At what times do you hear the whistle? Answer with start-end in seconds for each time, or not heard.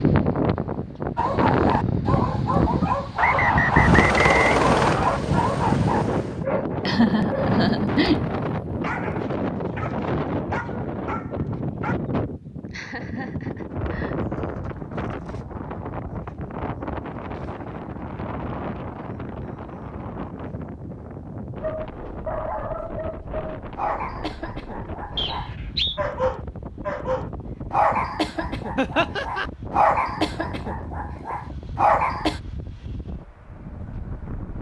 3.1-5.2, 25.1-26.0.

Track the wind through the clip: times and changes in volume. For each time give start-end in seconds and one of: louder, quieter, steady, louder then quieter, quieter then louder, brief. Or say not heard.
0.0-34.5 quieter.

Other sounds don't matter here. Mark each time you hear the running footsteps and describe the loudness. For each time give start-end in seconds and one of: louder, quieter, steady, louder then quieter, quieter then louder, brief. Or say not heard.
not heard.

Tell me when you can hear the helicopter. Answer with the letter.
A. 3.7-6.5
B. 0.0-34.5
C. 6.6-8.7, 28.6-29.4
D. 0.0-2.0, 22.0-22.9
A.